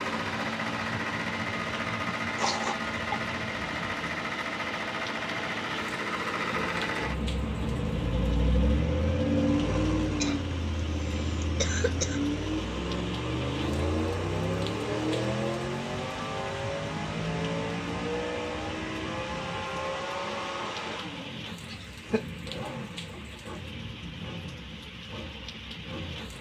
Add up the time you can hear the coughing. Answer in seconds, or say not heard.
3 s.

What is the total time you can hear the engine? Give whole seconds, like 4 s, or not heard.
26 s.